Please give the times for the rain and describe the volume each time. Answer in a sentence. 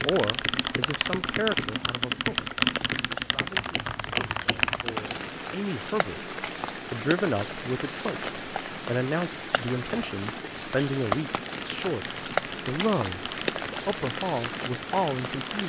The rain can be heard from 0.0 to 15.6 s, getting louder.